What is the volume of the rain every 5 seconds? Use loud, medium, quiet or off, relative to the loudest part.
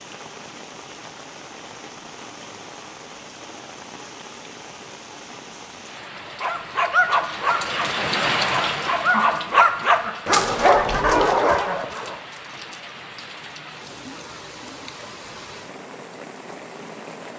medium, loud, medium, medium.